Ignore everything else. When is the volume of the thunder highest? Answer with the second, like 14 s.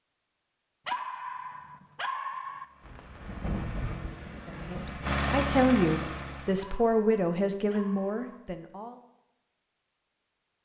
4 s.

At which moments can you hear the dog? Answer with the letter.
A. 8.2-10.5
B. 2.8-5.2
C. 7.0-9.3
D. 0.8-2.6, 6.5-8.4
D.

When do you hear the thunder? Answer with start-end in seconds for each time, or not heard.
2.8-5.2.